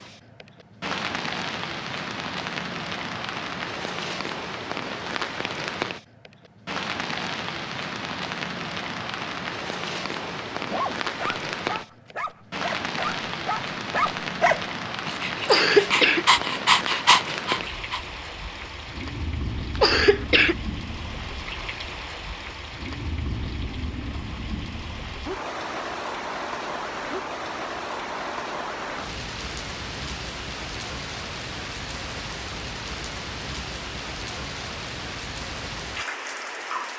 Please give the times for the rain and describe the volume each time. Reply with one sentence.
The rain can be heard from 0.0 to 36.9 s, at a steady volume.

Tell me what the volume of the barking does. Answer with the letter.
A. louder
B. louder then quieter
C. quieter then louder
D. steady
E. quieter
A.